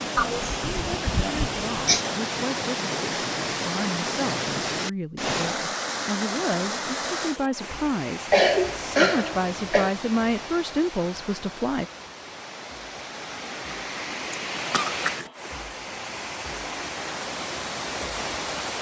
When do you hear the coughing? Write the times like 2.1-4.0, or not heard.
0.1-2.1, 8.3-9.9, 14.3-15.2.